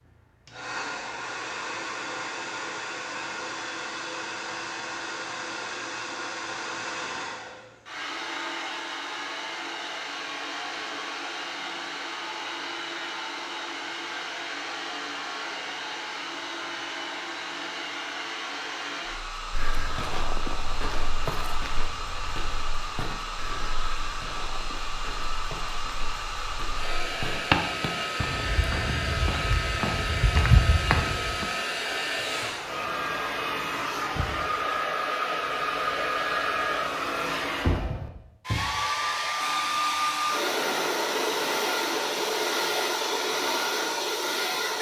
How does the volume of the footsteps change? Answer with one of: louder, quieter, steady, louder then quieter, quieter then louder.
quieter then louder.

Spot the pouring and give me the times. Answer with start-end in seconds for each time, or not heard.
not heard.